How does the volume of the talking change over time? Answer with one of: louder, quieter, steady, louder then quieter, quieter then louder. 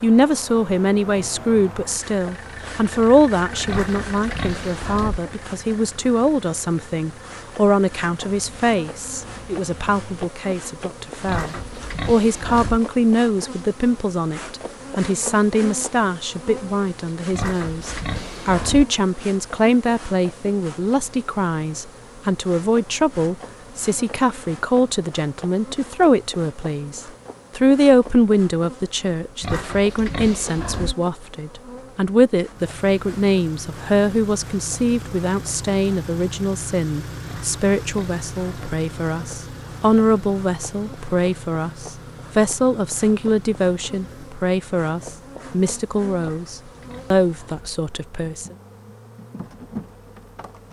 steady.